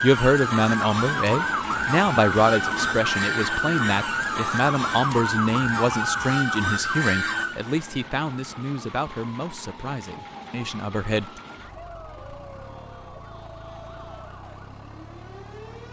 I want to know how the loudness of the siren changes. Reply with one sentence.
The volume of the siren goes down.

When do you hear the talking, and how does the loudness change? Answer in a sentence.
The talking can be heard from 0.0 to 11.4 s, getting quieter.